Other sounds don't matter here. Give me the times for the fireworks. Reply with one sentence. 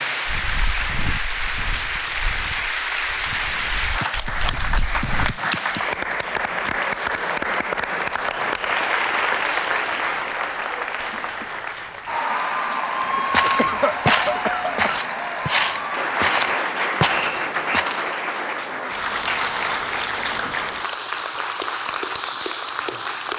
The fireworks can't be heard in this clip.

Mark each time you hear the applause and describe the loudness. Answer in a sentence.
You can hear the applause from 0.0 to 23.3 s, at a steady volume.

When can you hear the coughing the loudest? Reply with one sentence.
The volume of the coughing peaks at 14 seconds.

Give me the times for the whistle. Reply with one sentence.
You can hear the whistle from 17.1 to 17.8 s.